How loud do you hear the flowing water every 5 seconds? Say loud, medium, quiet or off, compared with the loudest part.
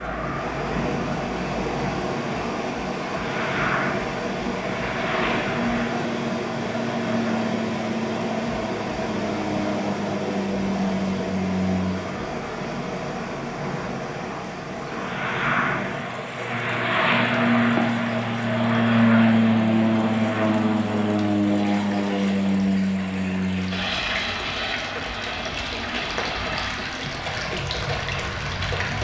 loud, loud, loud, medium, medium, loud.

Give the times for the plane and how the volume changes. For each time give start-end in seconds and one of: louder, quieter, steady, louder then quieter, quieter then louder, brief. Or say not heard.
0.0-28.9 louder then quieter.